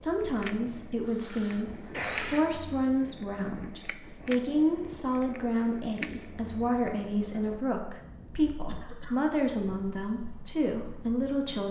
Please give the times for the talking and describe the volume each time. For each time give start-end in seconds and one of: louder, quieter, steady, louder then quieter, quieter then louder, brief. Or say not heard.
0.0-11.6 steady.